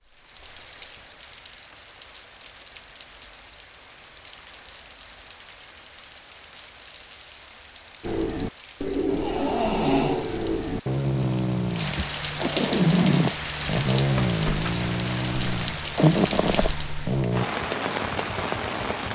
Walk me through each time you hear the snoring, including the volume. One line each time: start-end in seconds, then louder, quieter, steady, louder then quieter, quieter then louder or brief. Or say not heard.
8.0-17.4 steady.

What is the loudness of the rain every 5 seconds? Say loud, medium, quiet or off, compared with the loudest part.
quiet, quiet, loud, loud.